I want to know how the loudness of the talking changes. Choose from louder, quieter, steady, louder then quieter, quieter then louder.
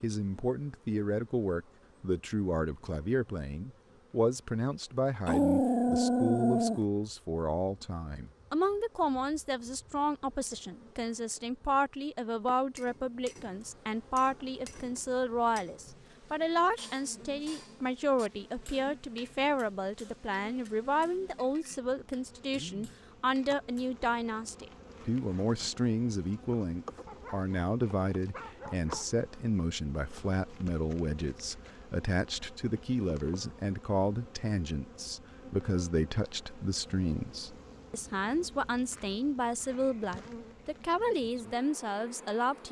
steady.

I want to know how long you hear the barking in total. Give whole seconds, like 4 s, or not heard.
4 s.